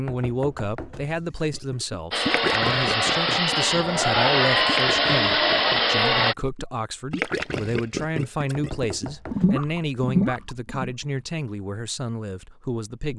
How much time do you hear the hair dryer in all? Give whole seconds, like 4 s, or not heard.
4 s.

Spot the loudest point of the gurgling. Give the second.
10 s.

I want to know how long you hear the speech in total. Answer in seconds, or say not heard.
13 s.